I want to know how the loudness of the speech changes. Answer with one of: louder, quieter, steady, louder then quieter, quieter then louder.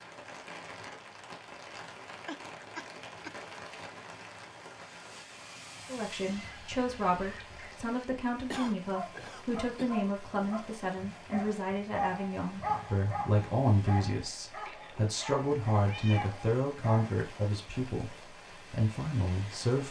steady.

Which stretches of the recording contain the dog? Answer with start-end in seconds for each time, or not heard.
8.7-17.2.